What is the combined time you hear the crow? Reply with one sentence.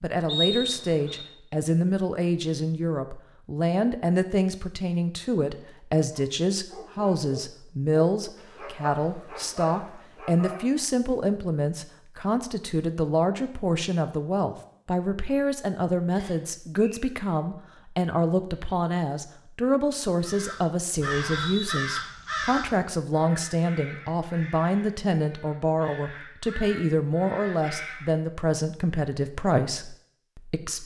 You can hear the crow for 8 seconds altogether.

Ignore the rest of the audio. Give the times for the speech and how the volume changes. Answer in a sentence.
You can hear the speech from 0.0 to 30.8 s, at a steady volume.